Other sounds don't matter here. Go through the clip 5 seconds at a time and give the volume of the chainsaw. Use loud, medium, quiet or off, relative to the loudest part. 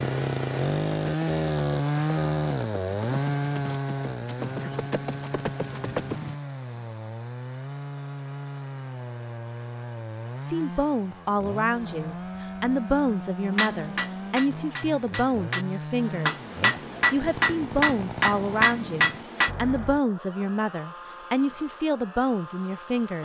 loud, medium, medium, medium, quiet.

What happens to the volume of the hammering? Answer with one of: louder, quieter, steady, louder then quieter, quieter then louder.
louder.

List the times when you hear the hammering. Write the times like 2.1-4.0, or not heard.
13.5-19.5.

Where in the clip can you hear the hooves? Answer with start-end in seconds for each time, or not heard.
0.0-6.4.